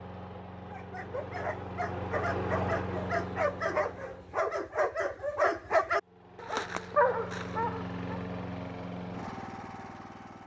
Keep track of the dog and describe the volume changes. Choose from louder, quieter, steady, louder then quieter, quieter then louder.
louder.